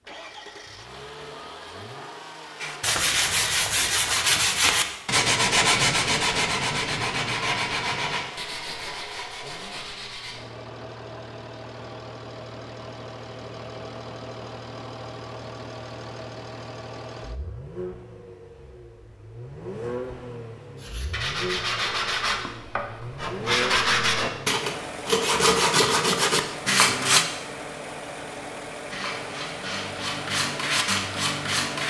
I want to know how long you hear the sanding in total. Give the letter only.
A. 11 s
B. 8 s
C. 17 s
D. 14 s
C.